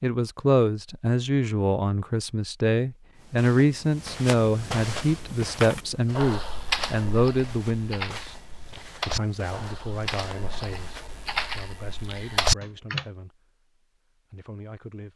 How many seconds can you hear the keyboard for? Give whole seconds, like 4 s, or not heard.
8 s.